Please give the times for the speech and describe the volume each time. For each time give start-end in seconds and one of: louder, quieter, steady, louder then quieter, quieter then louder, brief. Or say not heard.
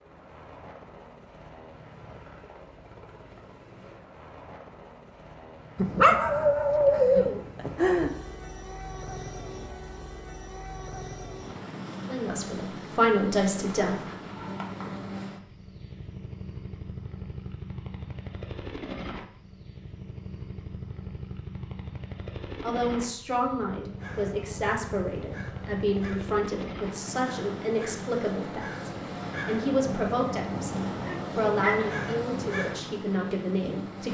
12.1-14.0 brief
22.6-34.0 steady.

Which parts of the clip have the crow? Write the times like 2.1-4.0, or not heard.
23.9-32.8.